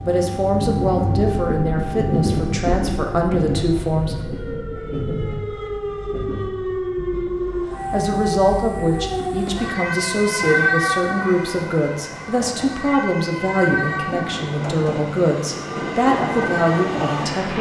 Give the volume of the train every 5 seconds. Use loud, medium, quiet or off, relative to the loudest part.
loud, medium, medium, loud.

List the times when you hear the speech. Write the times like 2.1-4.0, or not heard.
0.0-4.2, 7.9-17.5.